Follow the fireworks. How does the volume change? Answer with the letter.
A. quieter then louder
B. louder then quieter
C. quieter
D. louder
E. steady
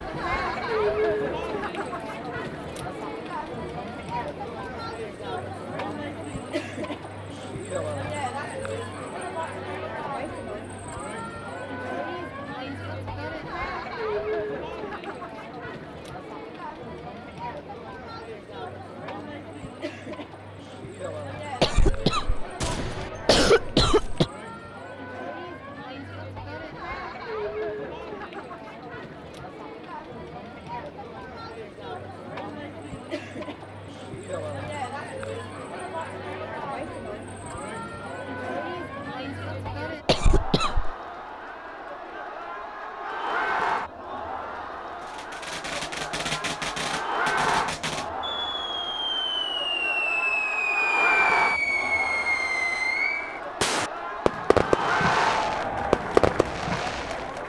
D.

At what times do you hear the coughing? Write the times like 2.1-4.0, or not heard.
21.6-24.2, 40.0-41.0.